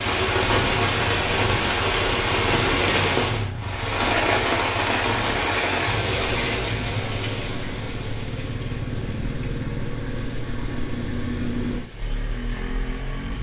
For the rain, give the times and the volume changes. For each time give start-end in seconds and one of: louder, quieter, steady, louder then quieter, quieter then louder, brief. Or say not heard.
0.0-13.3 quieter.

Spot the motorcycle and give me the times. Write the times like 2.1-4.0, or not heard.
0.0-13.3.